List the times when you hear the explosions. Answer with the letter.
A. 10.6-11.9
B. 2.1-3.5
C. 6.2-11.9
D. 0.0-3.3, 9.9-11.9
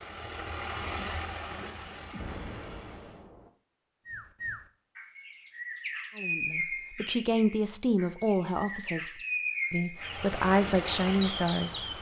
B.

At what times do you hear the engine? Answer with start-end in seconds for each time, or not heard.
0.0-3.3, 9.9-11.9.